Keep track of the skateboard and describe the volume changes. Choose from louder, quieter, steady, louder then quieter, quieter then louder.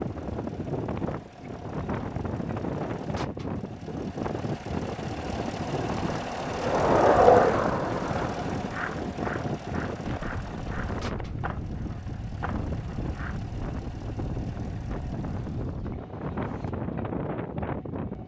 quieter.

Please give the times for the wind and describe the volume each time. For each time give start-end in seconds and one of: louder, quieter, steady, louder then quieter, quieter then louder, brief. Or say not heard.
0.0-18.2 steady.